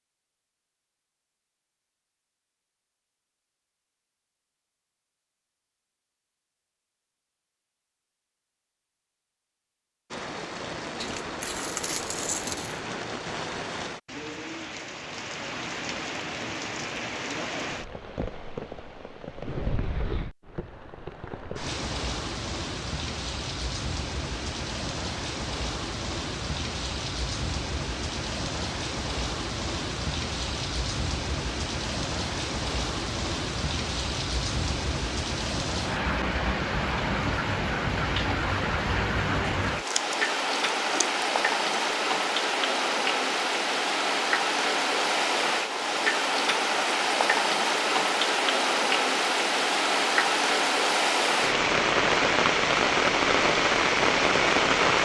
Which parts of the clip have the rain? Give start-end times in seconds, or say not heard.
10.1-54.9.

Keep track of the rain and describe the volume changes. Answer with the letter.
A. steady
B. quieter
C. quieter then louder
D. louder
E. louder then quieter
D.